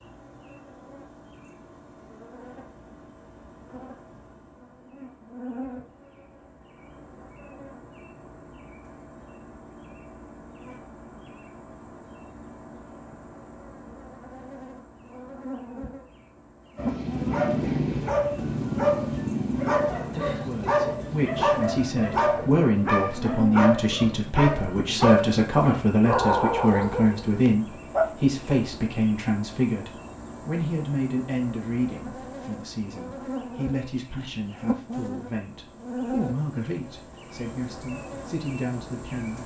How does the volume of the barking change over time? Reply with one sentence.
The loudness of the barking stays about the same.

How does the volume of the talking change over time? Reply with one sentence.
The loudness of the talking goes down.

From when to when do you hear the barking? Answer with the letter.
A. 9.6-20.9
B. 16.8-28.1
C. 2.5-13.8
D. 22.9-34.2
B.